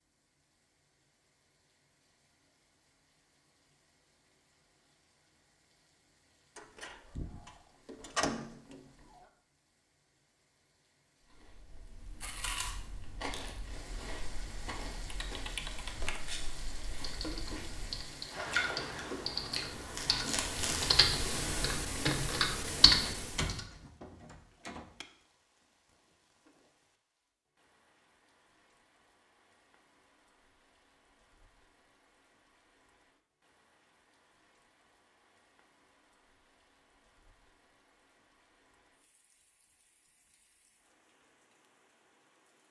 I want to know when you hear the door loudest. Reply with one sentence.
The volume of the door peaks at 8 seconds.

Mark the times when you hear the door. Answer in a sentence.
The door can be heard from 6.5 to 9.2 s and from 23.1 to 25.1 s.